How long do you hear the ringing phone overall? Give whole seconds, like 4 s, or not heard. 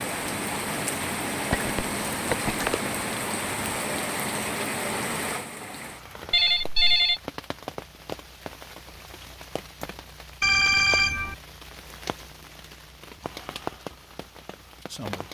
3 s.